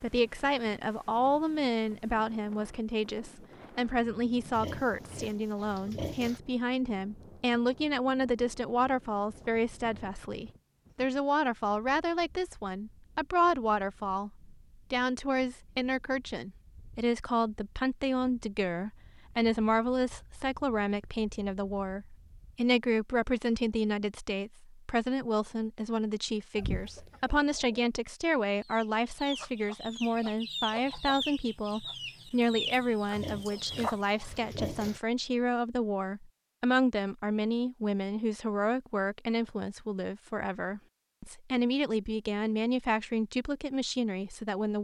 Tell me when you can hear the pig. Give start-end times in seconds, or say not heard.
4.5-6.4, 33.1-35.0.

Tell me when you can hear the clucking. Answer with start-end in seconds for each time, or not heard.
26.6-34.0.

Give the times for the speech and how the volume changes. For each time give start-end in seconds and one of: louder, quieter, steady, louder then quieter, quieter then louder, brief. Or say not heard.
0.0-44.7 steady.